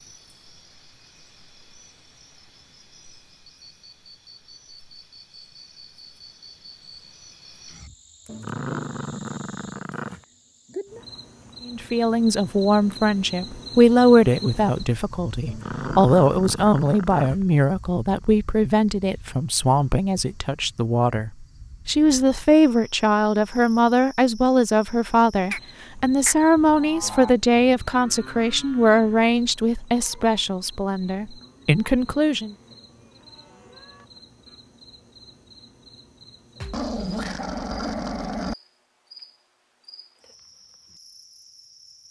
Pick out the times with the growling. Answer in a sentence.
The growling can be heard from 8.2 to 10.2 s, from 15.4 to 17.4 s and from 36.5 to 38.5 s.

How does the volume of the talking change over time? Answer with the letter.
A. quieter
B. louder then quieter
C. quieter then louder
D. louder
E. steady
E.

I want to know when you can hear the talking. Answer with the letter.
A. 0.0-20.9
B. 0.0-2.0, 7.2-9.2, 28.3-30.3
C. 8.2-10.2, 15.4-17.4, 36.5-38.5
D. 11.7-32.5
D.